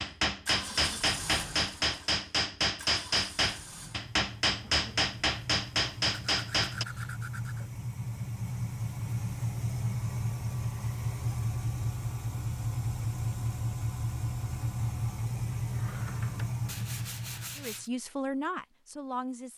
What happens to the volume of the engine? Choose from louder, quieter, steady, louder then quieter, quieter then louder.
louder.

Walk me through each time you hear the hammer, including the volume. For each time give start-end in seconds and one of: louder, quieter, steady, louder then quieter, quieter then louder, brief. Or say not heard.
0.0-6.8 steady.